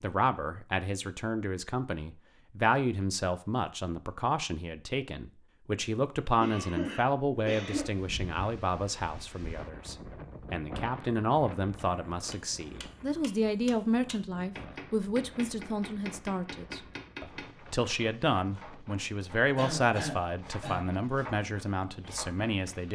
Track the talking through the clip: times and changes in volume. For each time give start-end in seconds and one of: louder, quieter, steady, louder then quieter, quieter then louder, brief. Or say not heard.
0.0-22.9 steady.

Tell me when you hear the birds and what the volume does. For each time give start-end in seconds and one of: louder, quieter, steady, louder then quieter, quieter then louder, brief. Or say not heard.
not heard.